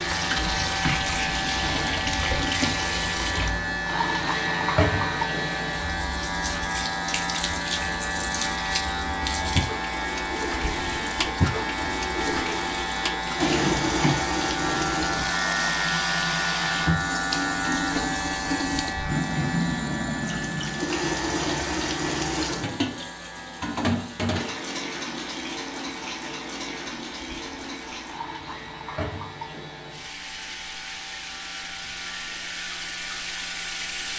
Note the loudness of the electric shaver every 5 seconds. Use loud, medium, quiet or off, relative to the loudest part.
loud, loud, loud, loud, medium, quiet, quiet.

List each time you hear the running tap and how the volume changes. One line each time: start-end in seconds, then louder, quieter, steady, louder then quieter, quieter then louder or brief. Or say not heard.
0.0-34.1 quieter.